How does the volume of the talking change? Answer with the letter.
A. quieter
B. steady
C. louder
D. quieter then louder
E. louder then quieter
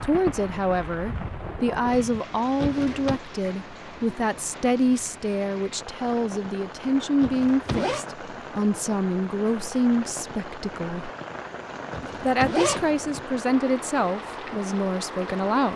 B.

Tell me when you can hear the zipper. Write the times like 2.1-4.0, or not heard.
2.5-3.2, 7.2-8.1, 11.9-13.2.